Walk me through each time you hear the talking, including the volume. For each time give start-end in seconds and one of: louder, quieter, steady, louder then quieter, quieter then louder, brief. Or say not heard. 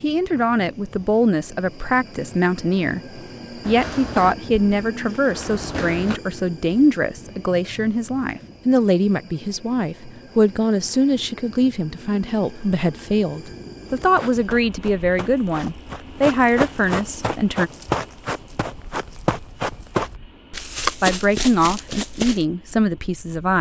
0.0-17.7 steady
21.0-23.5 brief.